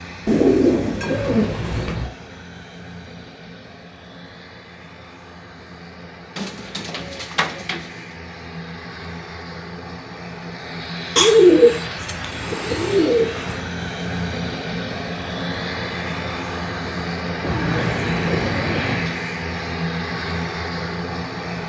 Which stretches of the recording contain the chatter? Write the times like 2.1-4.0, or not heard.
not heard.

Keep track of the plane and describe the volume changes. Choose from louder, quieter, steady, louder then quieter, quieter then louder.
louder.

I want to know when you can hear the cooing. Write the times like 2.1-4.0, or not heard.
0.2-2.1, 6.3-7.8, 11.2-13.6, 17.4-19.1.